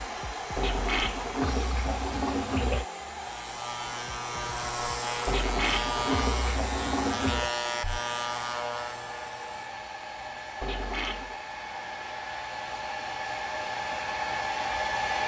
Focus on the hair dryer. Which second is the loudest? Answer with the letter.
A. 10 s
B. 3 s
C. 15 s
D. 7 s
C.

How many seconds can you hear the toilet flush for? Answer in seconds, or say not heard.
5 s.